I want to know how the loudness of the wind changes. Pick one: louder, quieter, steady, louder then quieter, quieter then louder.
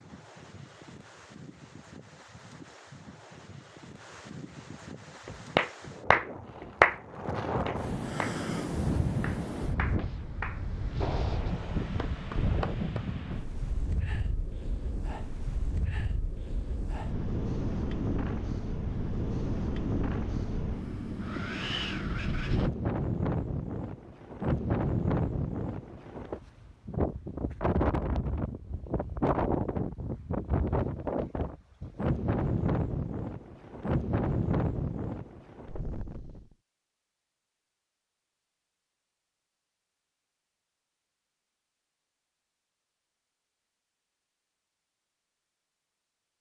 louder.